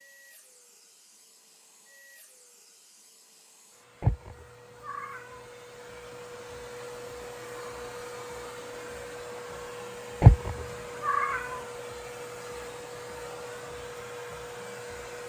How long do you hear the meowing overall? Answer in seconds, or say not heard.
3 s.